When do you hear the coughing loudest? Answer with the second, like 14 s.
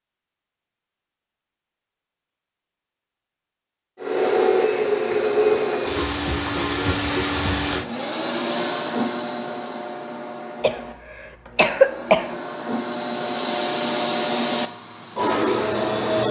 12 s.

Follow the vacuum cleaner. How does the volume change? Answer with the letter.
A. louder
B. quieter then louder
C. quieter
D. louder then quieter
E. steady
B.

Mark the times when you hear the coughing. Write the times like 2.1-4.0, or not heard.
10.6-12.2.